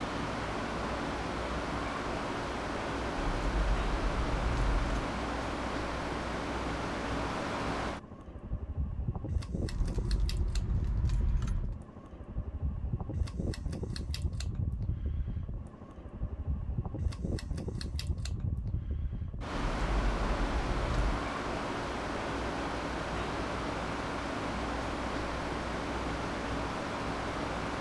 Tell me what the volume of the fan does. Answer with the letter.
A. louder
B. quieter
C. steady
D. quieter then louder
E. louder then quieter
D.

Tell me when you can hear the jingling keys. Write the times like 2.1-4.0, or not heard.
3.1-5.1, 9.7-11.8, 19.7-21.2.